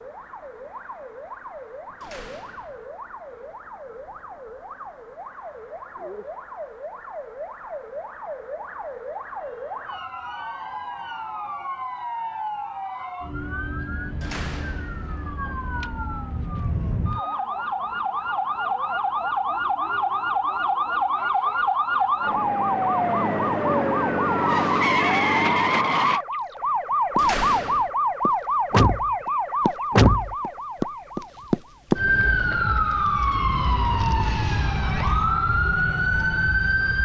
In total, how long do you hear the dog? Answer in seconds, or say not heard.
not heard.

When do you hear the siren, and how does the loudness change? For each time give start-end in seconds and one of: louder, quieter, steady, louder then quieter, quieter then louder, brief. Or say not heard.
0.0-37.0 louder.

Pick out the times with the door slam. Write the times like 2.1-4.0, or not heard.
2.0-2.9, 14.2-15.1, 27.1-27.9.